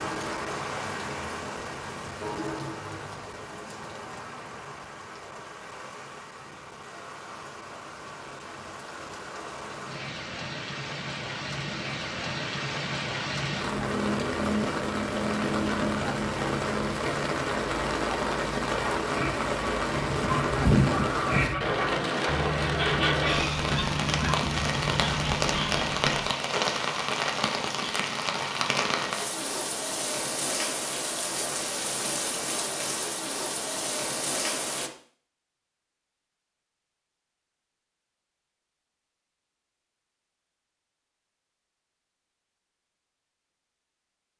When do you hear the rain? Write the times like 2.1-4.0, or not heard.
0.0-34.9.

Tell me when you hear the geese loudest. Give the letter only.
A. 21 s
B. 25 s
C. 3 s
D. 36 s
A.